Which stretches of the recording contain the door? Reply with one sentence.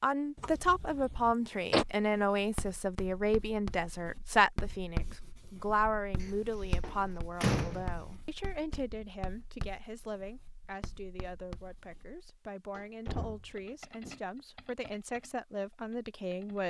You can hear the door from 0.3 to 1.9 s, from 6.2 to 8.2 s and from 12.8 to 14.2 s.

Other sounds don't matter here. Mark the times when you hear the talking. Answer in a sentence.
You can hear the talking from 0.0 to 16.6 s.